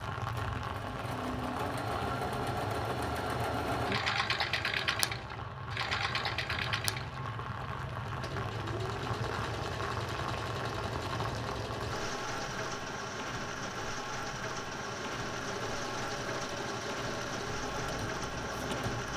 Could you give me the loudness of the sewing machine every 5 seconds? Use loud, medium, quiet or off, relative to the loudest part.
loud, loud, medium, medium.